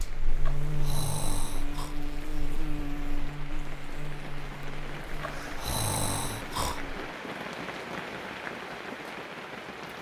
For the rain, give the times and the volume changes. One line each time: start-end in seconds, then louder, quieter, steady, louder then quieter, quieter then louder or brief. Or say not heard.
0.0-9.9 louder.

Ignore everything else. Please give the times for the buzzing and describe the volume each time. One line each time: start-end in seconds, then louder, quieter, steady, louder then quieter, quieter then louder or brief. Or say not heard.
0.0-7.2 quieter.